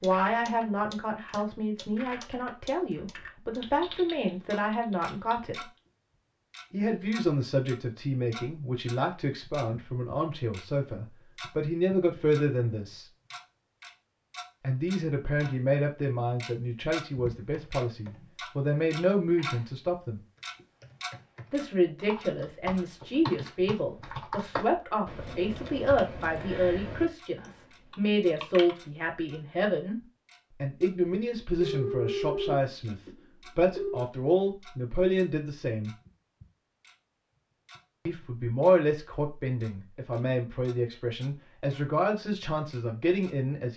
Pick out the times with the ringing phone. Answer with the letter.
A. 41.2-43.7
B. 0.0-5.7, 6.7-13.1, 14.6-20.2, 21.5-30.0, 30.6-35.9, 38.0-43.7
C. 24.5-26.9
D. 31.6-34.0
D.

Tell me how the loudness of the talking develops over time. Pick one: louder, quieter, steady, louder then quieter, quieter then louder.
steady.